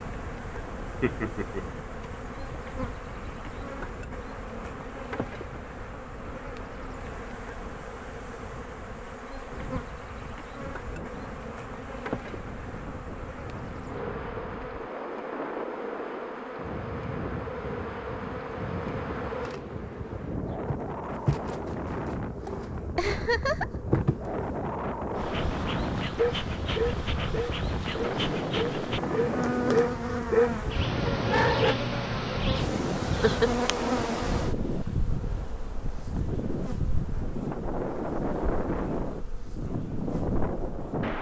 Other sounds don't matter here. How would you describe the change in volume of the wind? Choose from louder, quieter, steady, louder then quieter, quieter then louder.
louder.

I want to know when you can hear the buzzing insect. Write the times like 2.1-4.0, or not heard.
0.0-41.1.